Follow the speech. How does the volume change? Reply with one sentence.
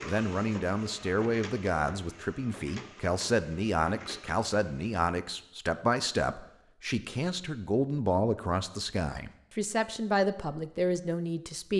The loudness of the speech stays about the same.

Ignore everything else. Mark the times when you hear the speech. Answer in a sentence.
You can hear the speech from 0.0 to 11.7 s.